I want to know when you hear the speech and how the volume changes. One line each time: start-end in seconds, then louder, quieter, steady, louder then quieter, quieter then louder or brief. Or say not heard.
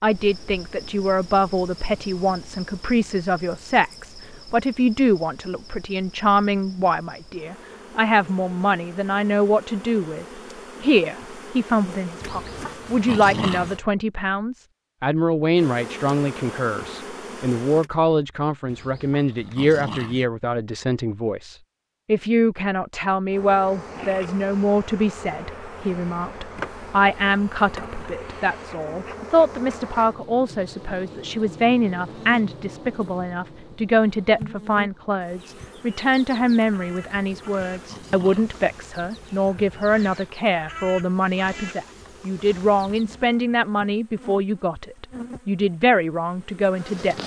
0.0-47.1 steady.